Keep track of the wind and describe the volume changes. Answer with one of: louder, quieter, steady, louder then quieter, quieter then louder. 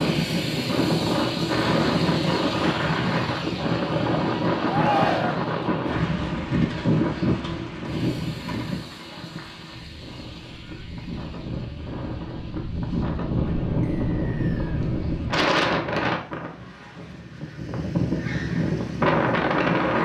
quieter then louder.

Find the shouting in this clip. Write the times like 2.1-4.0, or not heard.
4.7-5.5.